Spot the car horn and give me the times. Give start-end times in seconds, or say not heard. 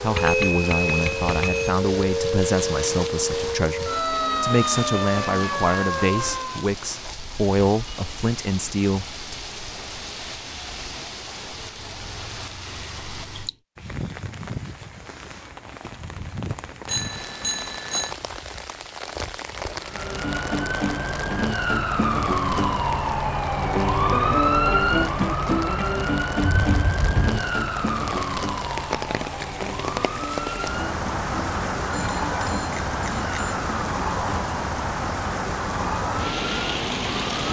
26.4-27.5.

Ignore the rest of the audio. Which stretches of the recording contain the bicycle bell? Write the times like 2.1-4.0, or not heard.
0.1-1.8, 16.9-18.1, 31.9-33.5.